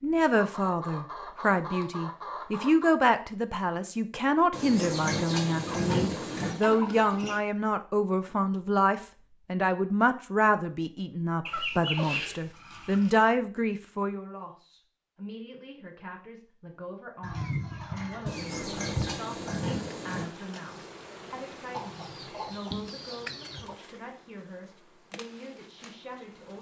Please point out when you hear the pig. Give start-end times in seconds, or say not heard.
4.5-6.5, 18.2-20.2.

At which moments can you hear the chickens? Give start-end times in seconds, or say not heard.
0.3-3.0, 5.7-7.4, 11.4-13.1, 17.2-19.1, 21.7-23.8.